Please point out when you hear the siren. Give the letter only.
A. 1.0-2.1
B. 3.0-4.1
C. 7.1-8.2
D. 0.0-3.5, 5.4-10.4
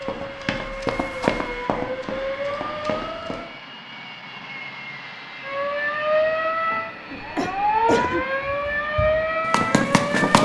D.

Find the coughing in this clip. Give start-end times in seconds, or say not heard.
7.1-8.2.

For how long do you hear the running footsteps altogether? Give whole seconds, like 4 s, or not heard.
5 s.